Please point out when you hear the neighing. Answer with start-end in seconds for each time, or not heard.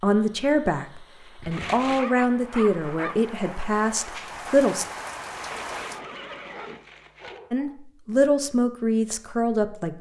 1.5-2.1, 5.3-7.4.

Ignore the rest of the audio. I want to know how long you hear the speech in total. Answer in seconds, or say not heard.
7 s.